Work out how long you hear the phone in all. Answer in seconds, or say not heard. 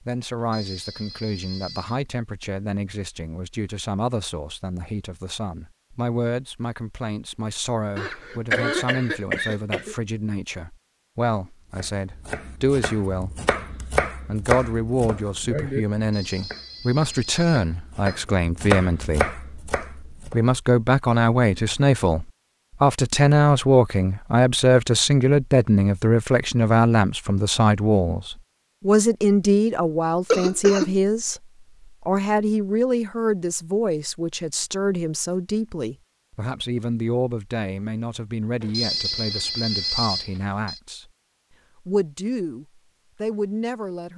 6 s.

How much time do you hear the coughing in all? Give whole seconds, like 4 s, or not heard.
3 s.